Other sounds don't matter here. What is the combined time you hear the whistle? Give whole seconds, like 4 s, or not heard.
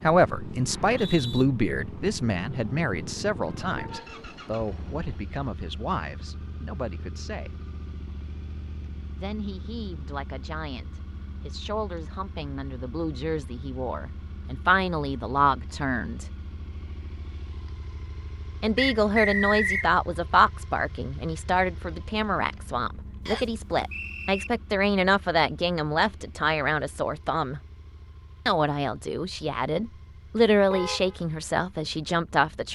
3 s.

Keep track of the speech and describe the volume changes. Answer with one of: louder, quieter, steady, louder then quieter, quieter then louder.
quieter then louder.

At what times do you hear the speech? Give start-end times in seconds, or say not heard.
0.0-7.5, 9.2-16.2, 18.6-27.6, 28.4-32.7.